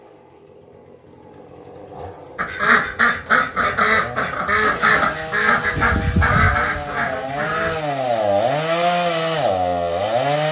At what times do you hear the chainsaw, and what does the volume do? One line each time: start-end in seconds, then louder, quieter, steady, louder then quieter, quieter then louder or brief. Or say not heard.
0.0-10.4 louder.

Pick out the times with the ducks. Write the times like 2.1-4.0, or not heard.
2.4-7.8.